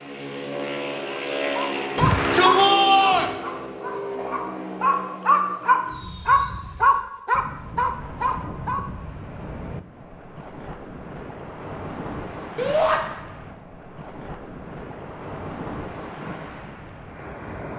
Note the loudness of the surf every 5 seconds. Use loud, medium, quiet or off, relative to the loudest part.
off, loud, loud, loud.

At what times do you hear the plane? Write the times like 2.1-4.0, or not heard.
0.0-7.0.